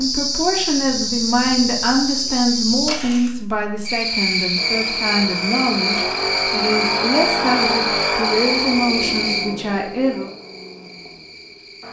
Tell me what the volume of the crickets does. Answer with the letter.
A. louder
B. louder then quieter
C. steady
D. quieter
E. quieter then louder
D.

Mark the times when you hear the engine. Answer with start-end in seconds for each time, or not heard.
4.5-11.8.